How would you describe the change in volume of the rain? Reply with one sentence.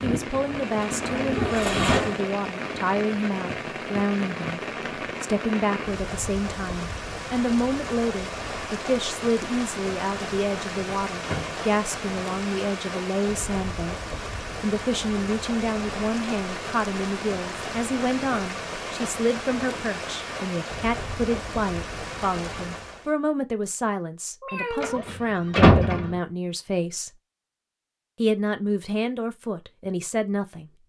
The volume of the rain stays about the same.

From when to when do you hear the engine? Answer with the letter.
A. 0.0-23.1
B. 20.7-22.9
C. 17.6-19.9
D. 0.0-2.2
D.